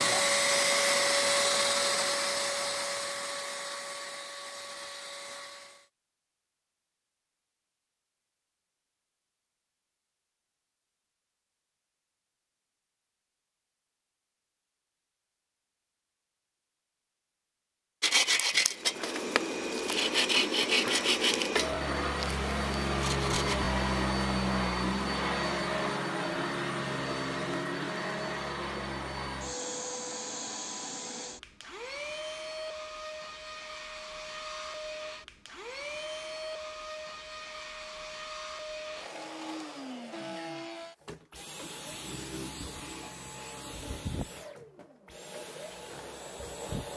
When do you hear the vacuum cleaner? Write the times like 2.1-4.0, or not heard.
0.0-5.8, 18.7-46.9.